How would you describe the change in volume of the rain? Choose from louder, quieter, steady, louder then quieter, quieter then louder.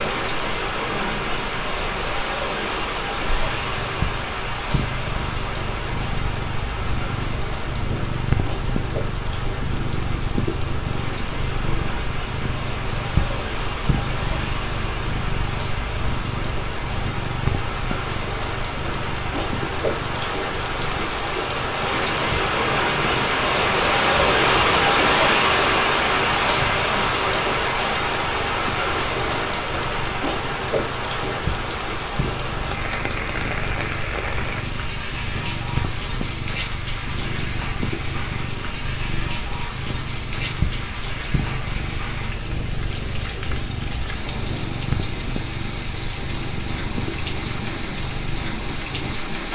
louder then quieter.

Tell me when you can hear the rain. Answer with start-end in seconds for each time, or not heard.
0.0-49.5.